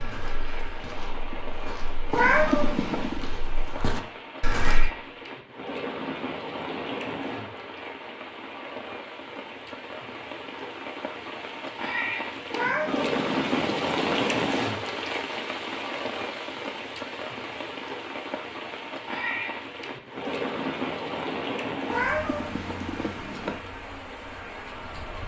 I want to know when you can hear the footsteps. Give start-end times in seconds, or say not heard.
0.0-4.9.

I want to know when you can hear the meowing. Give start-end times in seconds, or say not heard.
2.1-3.2, 12.5-14.3, 21.9-23.6.